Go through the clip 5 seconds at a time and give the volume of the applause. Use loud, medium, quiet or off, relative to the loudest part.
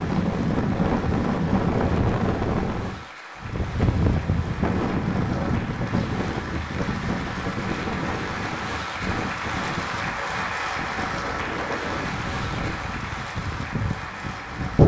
medium, loud, loud.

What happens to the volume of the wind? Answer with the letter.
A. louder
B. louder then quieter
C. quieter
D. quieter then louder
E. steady
C.